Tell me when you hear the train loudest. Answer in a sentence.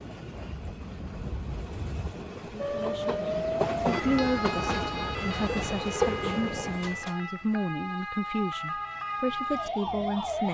The volume of the train peaks at 6 seconds.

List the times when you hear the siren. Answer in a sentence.
You can hear the siren from 2.5 to 10.4 s.